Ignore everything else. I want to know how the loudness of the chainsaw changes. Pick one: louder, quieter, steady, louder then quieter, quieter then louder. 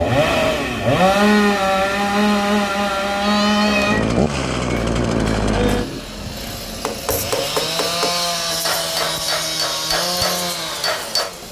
quieter.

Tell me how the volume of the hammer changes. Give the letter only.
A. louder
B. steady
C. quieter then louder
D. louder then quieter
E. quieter
A.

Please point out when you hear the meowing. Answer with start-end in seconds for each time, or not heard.
3.2-4.2.